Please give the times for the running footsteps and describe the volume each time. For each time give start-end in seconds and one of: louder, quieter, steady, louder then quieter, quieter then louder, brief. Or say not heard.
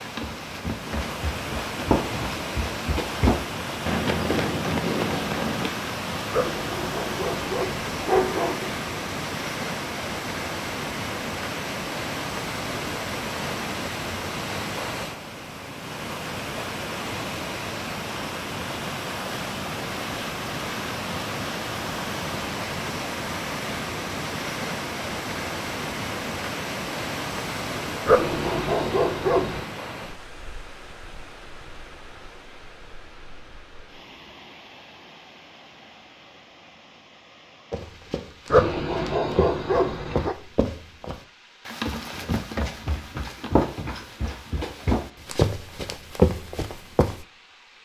0.0-5.7 louder
37.7-47.2 louder.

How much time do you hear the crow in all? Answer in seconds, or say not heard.
not heard.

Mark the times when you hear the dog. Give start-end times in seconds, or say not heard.
6.3-8.8, 28.1-29.6, 38.5-40.4.